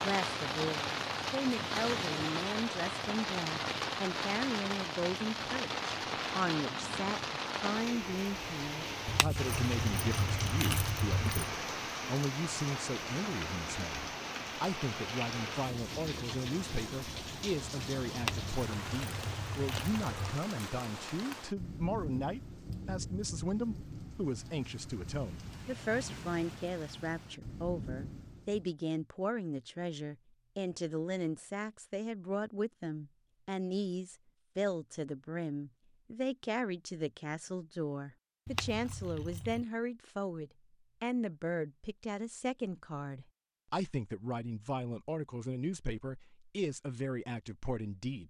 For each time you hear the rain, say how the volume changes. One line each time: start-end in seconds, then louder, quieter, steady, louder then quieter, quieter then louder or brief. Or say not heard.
0.0-28.7 quieter.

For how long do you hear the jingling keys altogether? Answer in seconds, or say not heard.
6 s.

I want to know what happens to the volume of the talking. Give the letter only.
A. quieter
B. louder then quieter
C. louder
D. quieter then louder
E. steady
E.